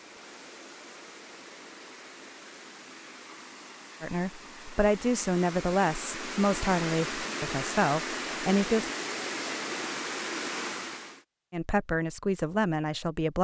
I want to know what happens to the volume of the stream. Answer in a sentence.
The volume of the stream goes up.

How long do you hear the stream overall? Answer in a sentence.
You can hear the stream for 11 seconds altogether.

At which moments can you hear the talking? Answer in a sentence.
The talking can be heard from 4.0 to 8.9 s and from 11.5 to 13.3 s.